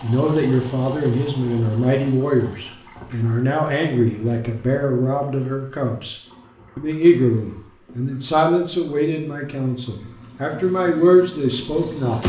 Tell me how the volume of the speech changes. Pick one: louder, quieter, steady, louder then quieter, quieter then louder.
steady.